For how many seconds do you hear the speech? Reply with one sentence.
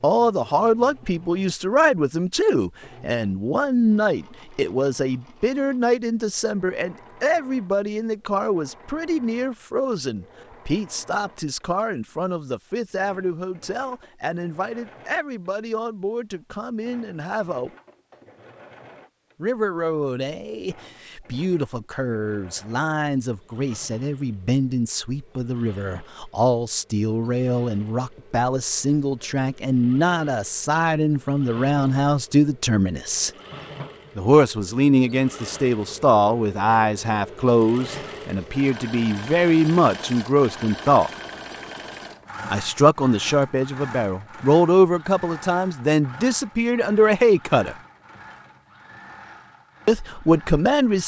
The speech can be heard for 45 seconds in total.